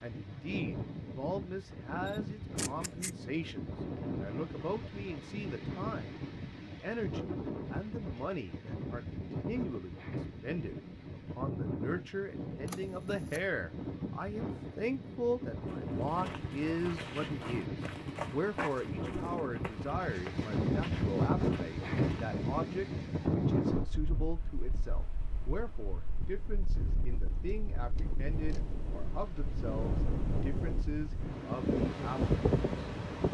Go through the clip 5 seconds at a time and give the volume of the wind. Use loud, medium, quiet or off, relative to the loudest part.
medium, medium, medium, medium, loud, medium, loud.